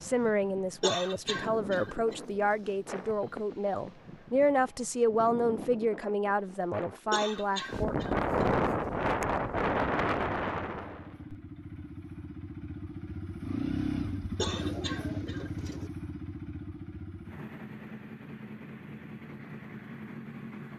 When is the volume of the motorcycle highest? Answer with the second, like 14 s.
14 s.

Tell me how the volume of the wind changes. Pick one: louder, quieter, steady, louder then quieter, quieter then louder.
louder.